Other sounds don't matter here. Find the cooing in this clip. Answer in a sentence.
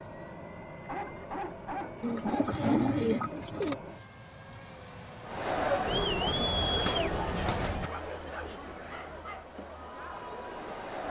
You can hear the cooing from 2.0 to 3.8 s and from 5.8 to 7.9 s.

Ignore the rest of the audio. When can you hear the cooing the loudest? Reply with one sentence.
The volume of the cooing peaks at 3 seconds.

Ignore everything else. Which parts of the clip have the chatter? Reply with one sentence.
The chatter can be heard from 5.2 to 11.0 s.